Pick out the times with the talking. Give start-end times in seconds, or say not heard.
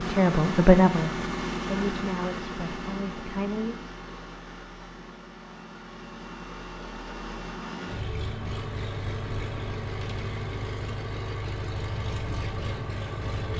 0.0-3.8.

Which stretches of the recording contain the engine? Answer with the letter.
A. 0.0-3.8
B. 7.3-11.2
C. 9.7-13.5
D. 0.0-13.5
D.